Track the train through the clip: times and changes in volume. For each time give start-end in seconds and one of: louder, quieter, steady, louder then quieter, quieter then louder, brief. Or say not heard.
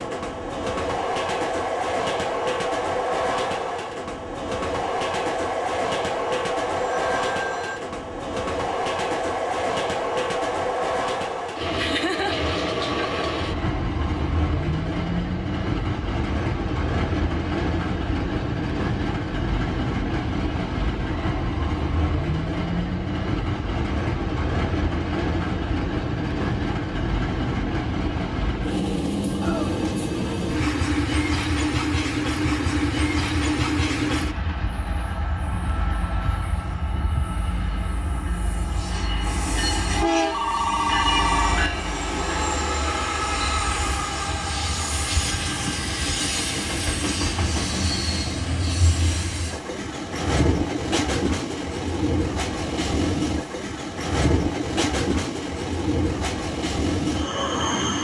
0.0-58.0 steady.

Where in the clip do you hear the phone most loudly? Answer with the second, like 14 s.
41 s.